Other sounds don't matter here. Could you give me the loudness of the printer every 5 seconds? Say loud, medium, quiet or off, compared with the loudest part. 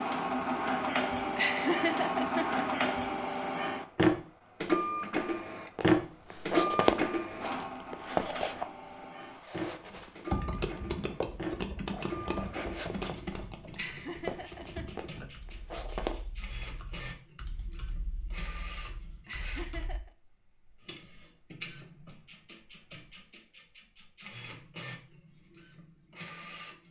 loud, loud, quiet, quiet, quiet, quiet.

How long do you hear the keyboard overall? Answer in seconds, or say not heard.
10 s.